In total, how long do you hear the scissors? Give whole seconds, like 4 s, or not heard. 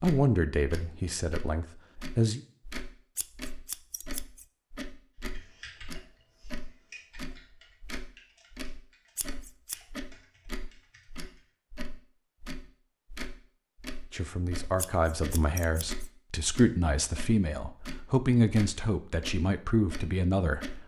3 s.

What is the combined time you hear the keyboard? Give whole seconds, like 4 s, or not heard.
6 s.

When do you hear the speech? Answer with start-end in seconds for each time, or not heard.
0.0-2.4, 14.1-20.8.